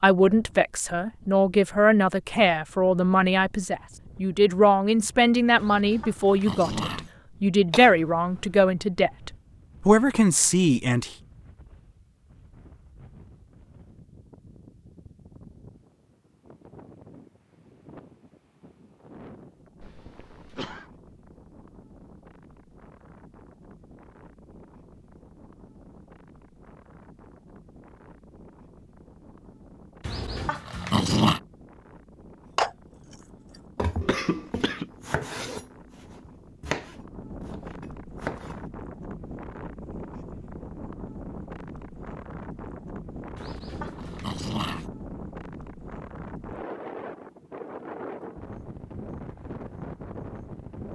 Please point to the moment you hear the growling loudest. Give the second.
31 s.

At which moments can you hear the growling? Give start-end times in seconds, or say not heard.
5.5-7.1, 30.1-31.4, 43.4-44.9.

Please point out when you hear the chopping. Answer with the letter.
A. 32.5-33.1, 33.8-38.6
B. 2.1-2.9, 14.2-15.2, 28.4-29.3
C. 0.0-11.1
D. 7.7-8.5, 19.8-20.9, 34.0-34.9
A.